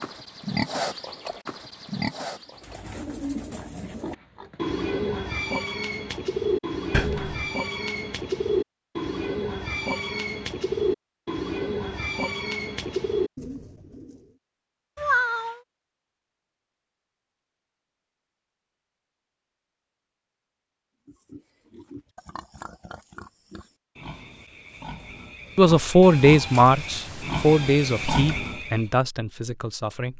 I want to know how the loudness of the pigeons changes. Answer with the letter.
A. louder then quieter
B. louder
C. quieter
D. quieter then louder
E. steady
E.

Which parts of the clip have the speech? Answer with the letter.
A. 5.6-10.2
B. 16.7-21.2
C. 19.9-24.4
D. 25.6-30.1
D.